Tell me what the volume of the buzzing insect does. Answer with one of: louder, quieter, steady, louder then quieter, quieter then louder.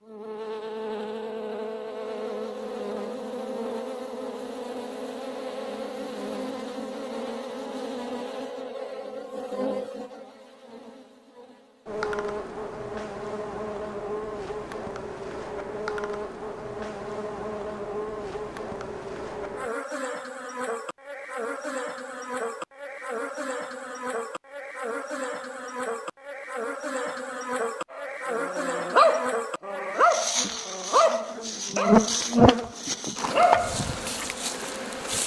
louder.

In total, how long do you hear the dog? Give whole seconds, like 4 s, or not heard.
6 s.